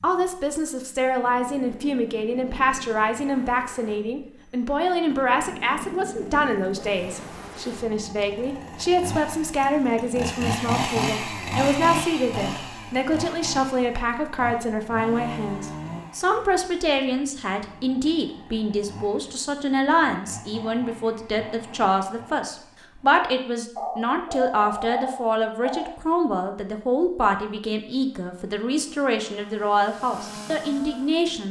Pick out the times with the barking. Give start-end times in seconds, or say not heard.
23.8-25.9.